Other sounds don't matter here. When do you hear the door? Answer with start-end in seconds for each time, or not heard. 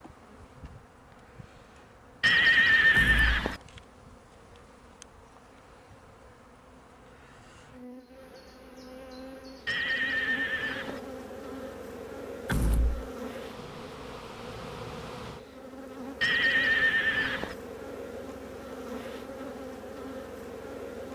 3.0-3.4, 12.4-13.1.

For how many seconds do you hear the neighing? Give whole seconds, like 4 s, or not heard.
4 s.